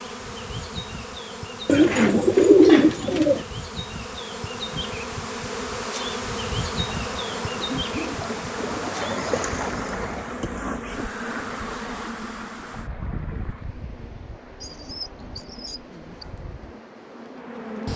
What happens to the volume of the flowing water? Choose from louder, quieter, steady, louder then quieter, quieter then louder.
quieter.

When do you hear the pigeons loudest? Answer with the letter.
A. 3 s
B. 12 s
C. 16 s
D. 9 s
A.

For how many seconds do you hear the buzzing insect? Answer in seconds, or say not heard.
18 s.